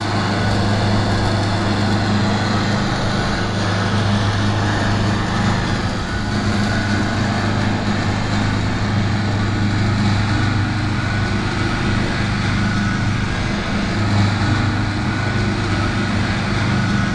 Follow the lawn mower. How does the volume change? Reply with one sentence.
The loudness of the lawn mower stays about the same.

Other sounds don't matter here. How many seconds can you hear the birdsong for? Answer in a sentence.
You can't hear the birdsong here.